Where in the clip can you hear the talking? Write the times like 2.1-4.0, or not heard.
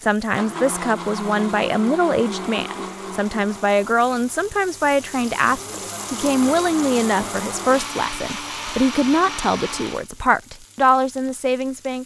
0.0-12.0.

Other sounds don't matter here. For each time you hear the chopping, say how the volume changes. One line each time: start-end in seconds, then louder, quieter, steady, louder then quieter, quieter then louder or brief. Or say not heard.
not heard.